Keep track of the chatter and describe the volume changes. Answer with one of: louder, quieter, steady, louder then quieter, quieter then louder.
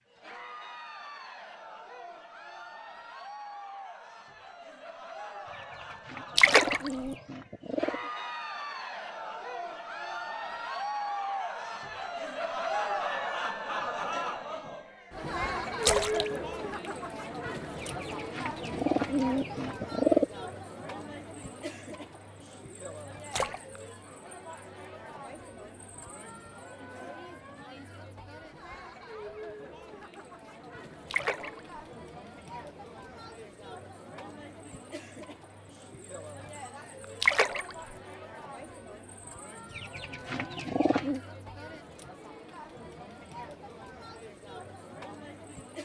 louder then quieter.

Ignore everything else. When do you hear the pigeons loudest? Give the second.
20 s.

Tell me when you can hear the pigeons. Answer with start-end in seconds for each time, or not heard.
5.5-8.1, 17.8-20.2, 39.7-41.2.